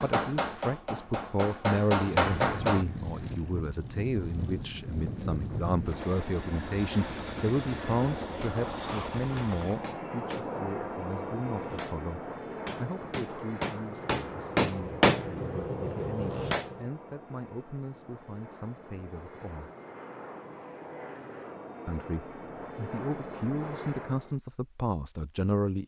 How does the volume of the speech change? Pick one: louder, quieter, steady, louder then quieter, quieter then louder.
quieter then louder.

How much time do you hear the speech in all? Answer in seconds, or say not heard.
24 s.